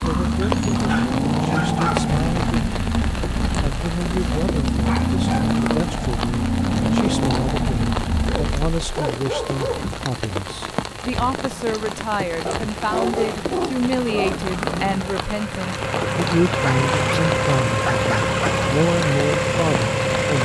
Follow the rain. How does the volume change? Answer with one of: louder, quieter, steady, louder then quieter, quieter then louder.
steady.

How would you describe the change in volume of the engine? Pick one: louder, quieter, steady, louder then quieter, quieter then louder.
quieter then louder.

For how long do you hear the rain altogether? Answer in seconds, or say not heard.
20 s.